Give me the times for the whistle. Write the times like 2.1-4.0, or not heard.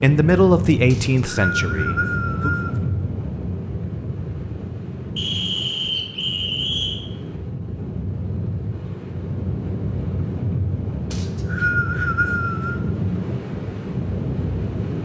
0.9-2.8, 5.2-7.0, 11.1-12.8.